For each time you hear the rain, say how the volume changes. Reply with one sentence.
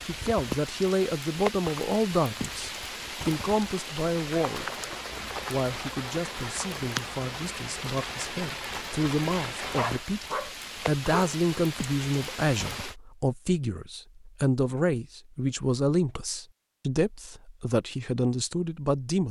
The rain can be heard from 0.0 to 12.9 s, at a steady volume.